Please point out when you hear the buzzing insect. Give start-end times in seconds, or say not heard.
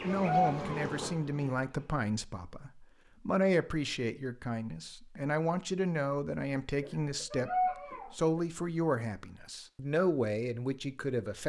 0.0-1.9.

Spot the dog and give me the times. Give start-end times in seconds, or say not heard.
0.1-0.9, 7.3-8.2.